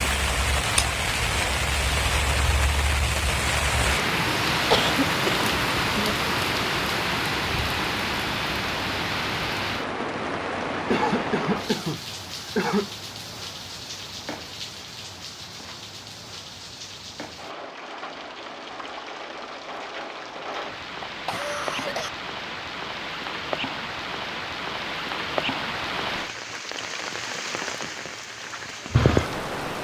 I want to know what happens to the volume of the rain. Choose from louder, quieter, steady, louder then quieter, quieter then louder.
quieter then louder.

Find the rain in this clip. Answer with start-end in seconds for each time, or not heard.
0.0-29.7.